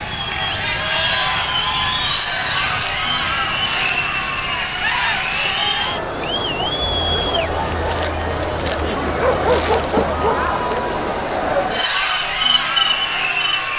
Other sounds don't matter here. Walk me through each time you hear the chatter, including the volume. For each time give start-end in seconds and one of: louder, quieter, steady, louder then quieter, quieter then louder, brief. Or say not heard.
0.0-13.7 steady.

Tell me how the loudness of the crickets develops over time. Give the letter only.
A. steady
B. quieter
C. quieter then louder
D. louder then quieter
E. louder
A.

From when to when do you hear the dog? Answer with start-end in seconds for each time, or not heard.
9.2-10.4.